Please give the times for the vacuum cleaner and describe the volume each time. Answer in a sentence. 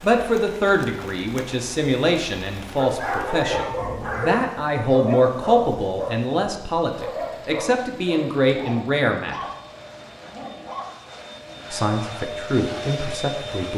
You can hear the vacuum cleaner from 9.4 to 13.7 s, getting louder.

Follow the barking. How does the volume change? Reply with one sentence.
The loudness of the barking goes down.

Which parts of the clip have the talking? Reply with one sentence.
The talking can be heard from 0.0 to 9.3 s and from 11.7 to 13.7 s.